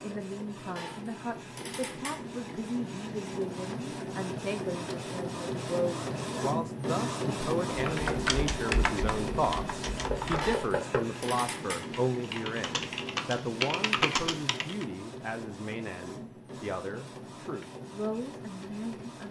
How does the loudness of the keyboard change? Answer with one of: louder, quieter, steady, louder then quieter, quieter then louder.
quieter then louder.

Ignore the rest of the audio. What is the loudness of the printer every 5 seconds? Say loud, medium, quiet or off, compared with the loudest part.
medium, loud, medium, medium.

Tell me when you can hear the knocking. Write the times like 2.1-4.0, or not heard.
10.1-11.1.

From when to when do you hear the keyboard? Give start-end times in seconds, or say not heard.
7.7-14.8.